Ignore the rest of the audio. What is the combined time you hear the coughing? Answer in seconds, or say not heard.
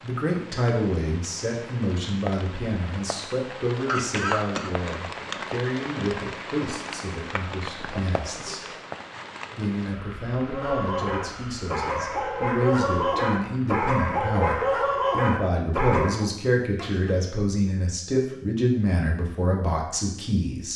2 s.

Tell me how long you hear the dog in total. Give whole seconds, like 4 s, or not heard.
6 s.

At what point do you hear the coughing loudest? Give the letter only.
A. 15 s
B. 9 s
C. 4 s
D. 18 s
C.